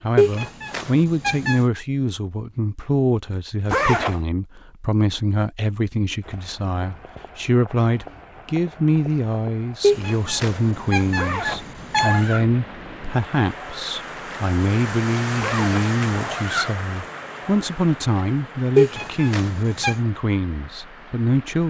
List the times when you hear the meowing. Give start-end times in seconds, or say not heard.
0.1-1.6, 9.8-12.2, 18.8-19.9.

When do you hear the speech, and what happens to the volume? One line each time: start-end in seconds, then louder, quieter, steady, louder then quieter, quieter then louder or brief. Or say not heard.
0.0-21.6 steady.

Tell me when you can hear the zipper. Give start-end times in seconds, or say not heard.
3.6-4.2, 11.2-12.4, 15.4-16.8.